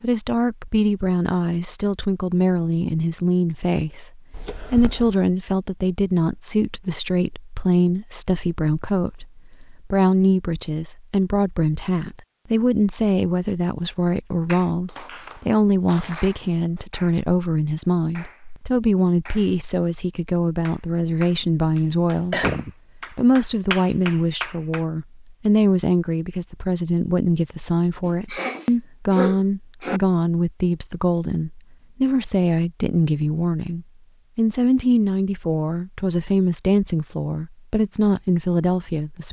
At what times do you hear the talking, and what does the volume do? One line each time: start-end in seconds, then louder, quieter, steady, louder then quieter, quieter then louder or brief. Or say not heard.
0.0-39.2 steady.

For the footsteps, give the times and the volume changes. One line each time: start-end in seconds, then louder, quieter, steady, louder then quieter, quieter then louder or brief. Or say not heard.
not heard.